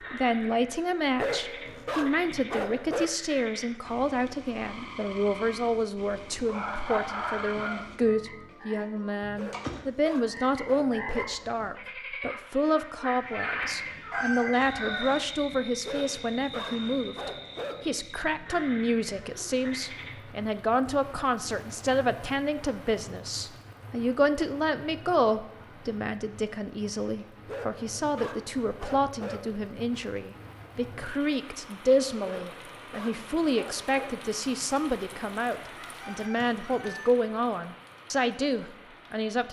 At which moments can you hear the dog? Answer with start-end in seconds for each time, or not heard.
1.1-3.1, 9.3-11.6, 15.8-18.1, 27.4-29.6, 32.2-34.2.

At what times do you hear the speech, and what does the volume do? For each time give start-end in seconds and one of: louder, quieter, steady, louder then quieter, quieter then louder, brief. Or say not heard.
0.1-39.4 steady.